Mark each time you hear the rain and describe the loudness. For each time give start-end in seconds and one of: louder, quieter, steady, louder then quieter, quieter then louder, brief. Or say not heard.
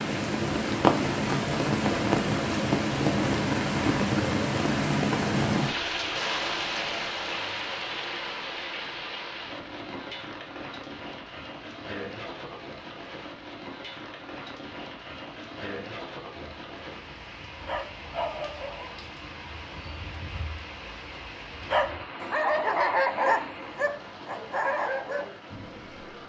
0.0-26.2 quieter.